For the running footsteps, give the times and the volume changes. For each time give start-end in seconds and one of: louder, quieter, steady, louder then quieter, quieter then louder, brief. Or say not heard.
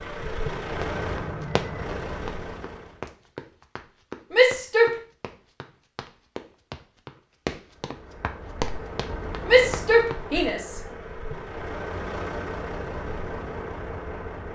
0.8-10.5 quieter then louder.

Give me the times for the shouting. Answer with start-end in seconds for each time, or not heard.
4.3-5.0, 9.4-10.8.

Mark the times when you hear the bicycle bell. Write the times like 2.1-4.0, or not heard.
0.5-1.9.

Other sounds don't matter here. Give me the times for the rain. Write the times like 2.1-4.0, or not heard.
not heard.